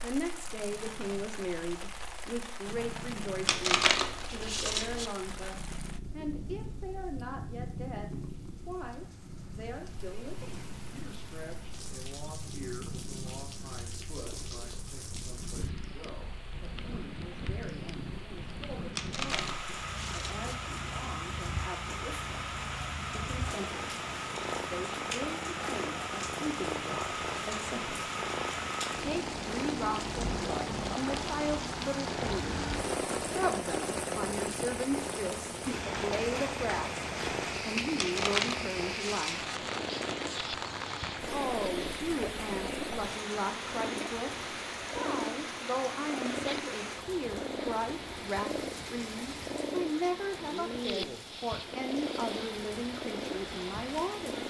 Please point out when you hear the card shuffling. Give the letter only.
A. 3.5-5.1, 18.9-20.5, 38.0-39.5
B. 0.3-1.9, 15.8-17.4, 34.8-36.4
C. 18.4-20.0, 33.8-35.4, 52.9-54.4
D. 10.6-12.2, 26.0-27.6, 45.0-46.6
A.